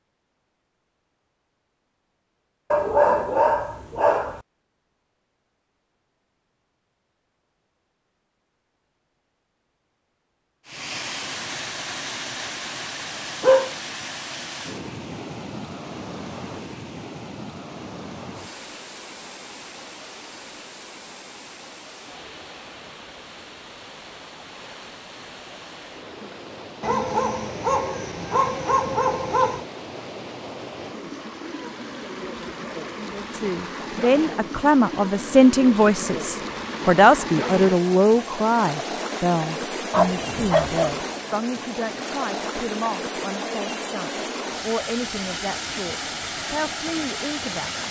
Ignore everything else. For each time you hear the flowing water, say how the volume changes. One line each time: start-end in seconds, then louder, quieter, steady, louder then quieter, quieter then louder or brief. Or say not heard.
10.7-47.8 quieter then louder.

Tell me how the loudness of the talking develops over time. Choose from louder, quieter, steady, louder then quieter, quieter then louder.
quieter.